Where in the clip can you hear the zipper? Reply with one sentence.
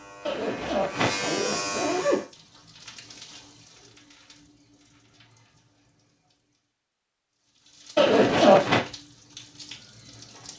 You can hear the zipper from 0.2 to 2.2 s and from 8.0 to 8.8 s.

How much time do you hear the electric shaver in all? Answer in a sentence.
The electric shaver can be heard for 2 seconds in total.